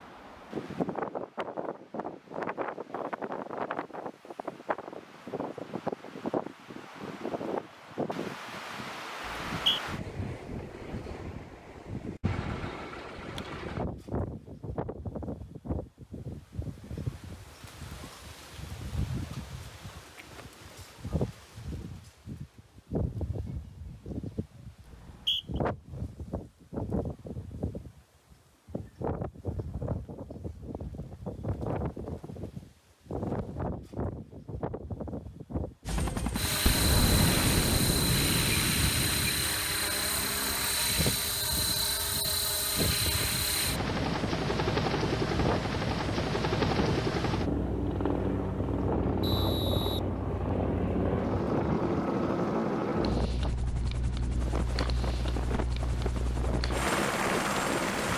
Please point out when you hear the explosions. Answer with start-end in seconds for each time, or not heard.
36.6-39.4.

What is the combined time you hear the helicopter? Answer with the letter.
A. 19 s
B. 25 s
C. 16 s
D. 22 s
D.